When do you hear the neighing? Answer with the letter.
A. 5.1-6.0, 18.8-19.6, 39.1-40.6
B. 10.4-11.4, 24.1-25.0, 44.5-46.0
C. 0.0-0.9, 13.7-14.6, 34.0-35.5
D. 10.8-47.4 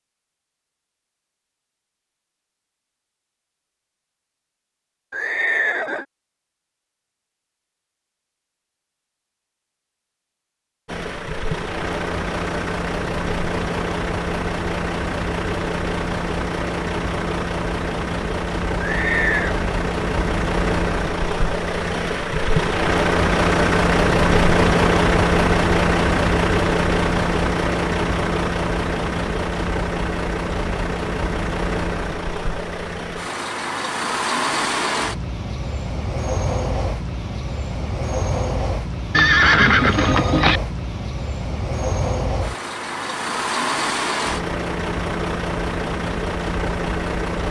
A.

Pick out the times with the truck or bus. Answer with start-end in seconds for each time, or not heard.
10.8-47.4.